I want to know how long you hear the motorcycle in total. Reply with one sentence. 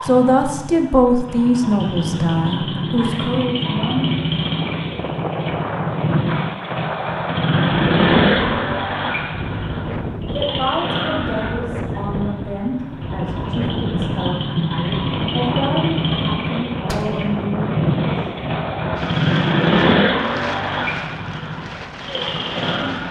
The motorcycle can be heard for 23 seconds in total.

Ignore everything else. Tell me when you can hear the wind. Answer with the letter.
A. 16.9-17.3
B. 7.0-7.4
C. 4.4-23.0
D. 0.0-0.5
C.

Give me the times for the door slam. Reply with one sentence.
The door slam can be heard from 16.9 to 17.3 s.